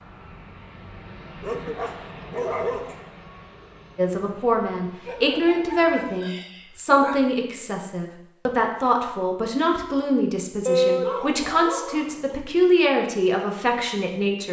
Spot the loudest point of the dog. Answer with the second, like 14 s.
11 s.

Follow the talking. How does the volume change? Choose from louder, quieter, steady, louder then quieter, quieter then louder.
steady.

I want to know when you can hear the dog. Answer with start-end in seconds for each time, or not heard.
1.4-3.0, 5.0-7.2, 10.7-12.3.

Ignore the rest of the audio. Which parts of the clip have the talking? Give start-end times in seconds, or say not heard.
4.0-14.4.